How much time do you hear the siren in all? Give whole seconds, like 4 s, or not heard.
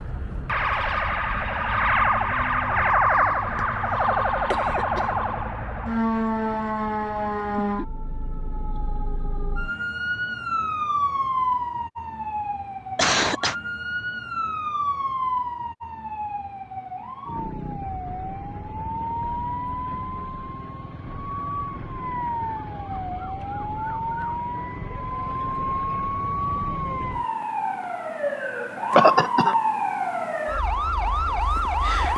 32 s.